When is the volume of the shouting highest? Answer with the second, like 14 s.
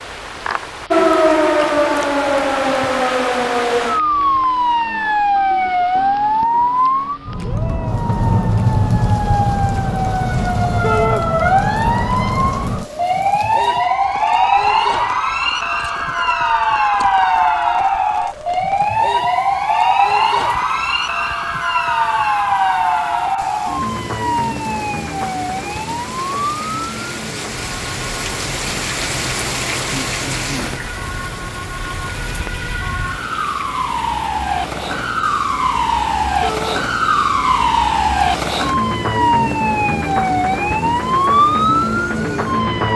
11 s.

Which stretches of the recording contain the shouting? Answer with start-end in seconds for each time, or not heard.
10.8-11.2, 36.4-36.9.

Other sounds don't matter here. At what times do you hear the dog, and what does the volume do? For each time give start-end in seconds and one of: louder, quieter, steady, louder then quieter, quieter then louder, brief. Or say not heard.
not heard.